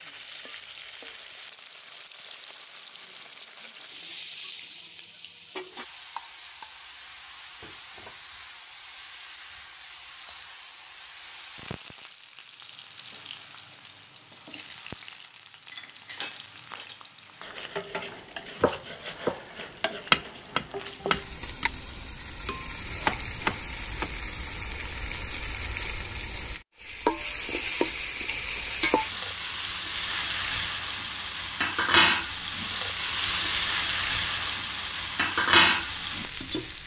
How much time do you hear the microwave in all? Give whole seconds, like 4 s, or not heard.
not heard.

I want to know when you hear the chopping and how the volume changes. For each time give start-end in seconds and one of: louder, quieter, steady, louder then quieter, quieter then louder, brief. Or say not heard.
18.6-19.4 brief
20.1-24.1 quieter then louder.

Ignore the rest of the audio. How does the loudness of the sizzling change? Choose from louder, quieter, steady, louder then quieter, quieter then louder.
louder.